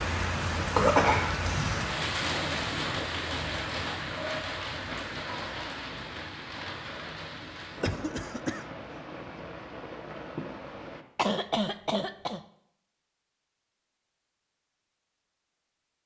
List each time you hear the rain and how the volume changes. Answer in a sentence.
You can hear the rain from 0.0 to 11.1 s, getting quieter.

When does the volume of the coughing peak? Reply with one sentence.
The loudest moment of the coughing is at 1 second.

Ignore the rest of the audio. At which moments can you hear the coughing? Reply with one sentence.
The coughing can be heard from 0.8 to 1.9 s, from 7.6 to 8.7 s and from 11.2 to 12.4 s.